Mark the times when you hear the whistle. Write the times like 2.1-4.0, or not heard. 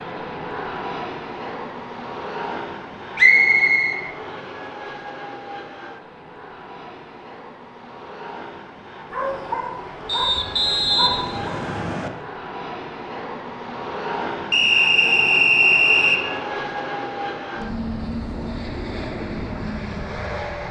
3.1-4.0, 10.1-12.1, 14.5-16.2.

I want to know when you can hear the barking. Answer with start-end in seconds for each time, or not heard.
9.1-11.6.